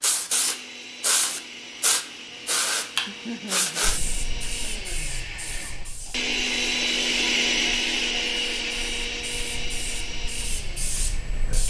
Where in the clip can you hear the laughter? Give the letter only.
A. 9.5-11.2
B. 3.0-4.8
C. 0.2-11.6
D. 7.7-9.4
B.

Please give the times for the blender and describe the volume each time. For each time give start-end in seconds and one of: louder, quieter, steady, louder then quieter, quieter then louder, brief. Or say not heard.
0.2-11.6 louder then quieter.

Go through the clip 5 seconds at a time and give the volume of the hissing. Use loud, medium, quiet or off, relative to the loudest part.
loud, quiet, medium.